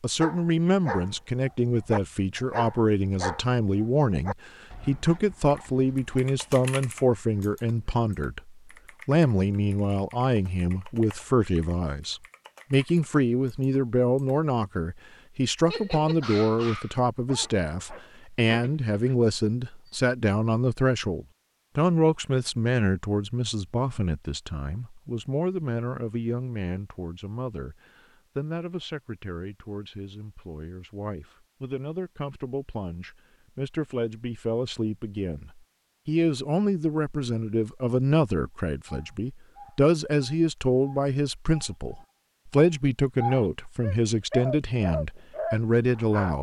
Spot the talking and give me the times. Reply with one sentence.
You can hear the talking from 0.0 to 46.3 s.